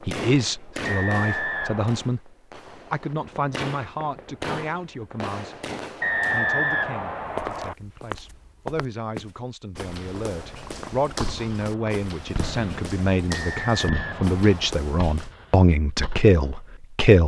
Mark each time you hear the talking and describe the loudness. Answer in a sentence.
You can hear the talking from 0.1 to 17.2 s, getting quieter then louder.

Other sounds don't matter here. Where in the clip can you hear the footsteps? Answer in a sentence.
The footsteps can be heard from 7.2 to 15.3 s.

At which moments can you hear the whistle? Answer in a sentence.
You can hear the whistle from 0.8 to 2.1 s, from 6.0 to 7.8 s and from 13.3 to 14.8 s.